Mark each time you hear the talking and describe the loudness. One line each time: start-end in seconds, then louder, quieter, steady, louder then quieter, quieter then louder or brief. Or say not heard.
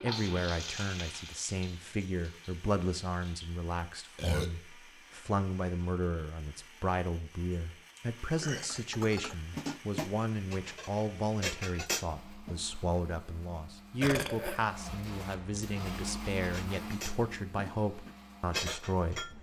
0.0-19.3 steady.